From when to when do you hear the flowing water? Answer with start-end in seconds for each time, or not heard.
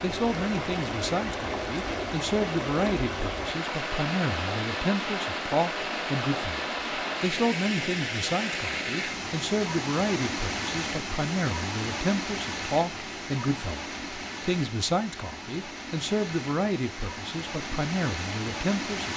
0.0-19.1.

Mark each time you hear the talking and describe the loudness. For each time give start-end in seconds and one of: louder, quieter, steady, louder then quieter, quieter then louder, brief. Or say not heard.
0.0-19.1 steady.